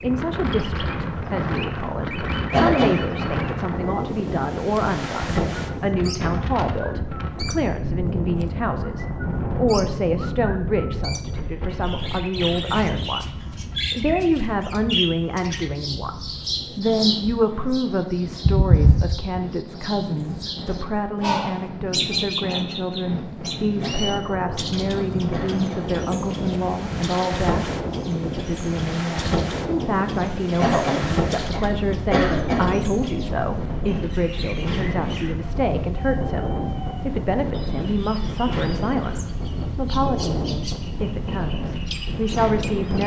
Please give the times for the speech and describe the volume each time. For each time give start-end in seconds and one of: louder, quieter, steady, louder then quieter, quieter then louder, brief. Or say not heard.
0.0-43.0 steady.